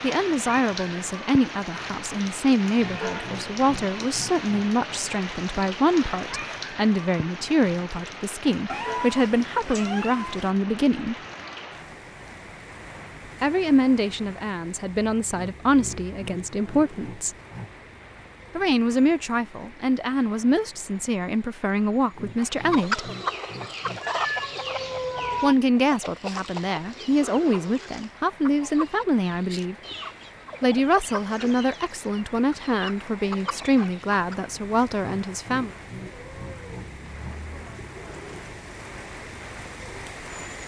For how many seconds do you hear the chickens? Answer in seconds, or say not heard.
12 s.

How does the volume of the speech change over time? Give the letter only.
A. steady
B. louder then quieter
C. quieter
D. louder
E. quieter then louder
A.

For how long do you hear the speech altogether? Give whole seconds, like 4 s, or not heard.
29 s.